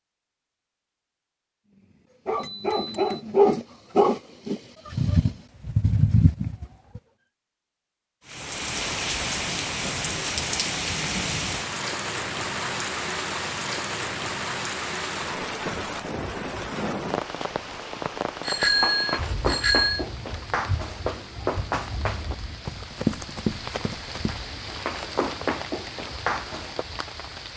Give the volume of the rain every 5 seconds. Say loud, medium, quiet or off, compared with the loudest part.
off, loud, loud, loud, medium, medium.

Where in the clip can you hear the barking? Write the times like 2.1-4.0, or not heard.
2.2-7.0.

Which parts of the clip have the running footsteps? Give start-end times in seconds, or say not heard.
18.6-26.9.